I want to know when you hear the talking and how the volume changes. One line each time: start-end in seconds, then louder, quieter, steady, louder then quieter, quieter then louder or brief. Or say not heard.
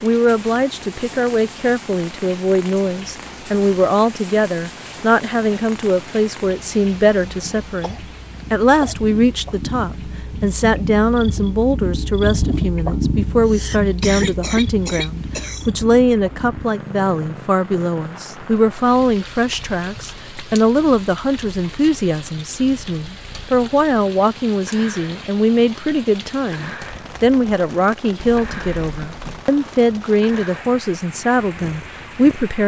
0.0-32.6 steady.